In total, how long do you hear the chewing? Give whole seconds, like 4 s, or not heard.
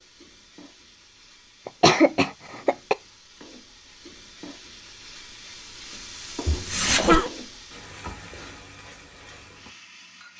not heard.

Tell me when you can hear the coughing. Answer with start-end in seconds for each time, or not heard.
1.6-3.0, 6.5-7.3.